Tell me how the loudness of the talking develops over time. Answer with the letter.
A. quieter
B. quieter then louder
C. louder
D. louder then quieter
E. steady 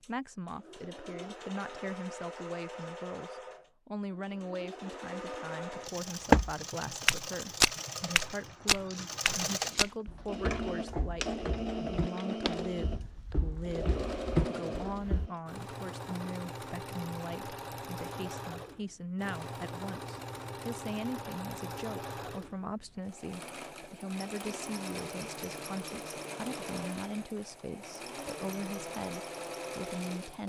E.